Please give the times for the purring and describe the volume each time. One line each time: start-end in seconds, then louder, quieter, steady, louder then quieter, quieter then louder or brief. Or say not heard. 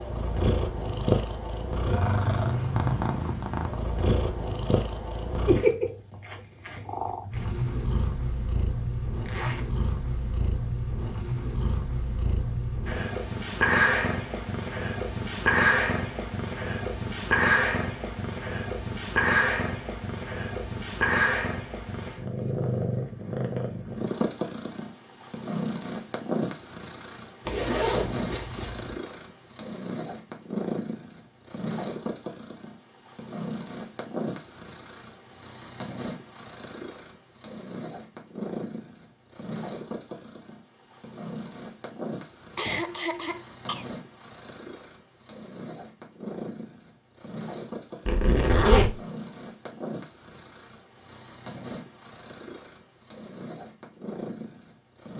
0.0-55.1 quieter.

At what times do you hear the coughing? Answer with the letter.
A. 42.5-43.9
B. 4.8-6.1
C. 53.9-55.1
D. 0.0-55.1
A.